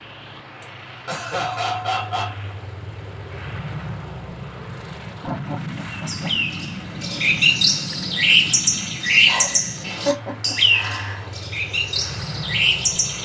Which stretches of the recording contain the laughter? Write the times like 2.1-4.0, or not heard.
0.6-2.4, 5.2-6.3, 9.2-11.2.